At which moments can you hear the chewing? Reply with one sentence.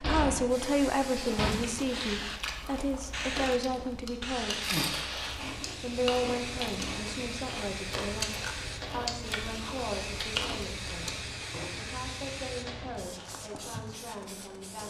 You can hear the chewing from 0.6 to 11.7 s.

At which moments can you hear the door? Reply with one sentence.
You can hear the door from 0.0 to 1.6 s.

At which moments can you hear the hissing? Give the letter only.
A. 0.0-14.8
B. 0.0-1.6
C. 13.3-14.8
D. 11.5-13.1
A.